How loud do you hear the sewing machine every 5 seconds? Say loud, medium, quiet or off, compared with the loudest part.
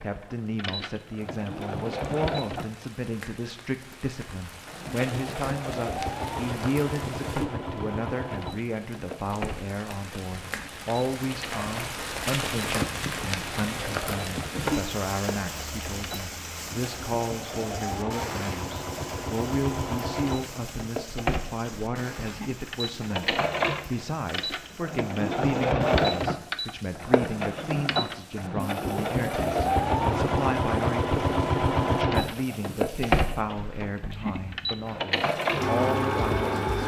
medium, medium, quiet, medium, medium, loud, loud, loud.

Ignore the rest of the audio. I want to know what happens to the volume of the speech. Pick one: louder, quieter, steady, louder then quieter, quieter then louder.
steady.